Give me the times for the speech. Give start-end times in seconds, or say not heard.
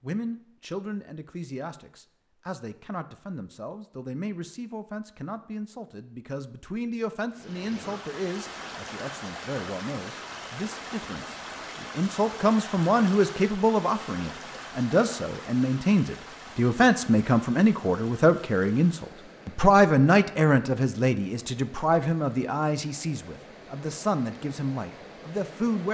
0.0-25.8.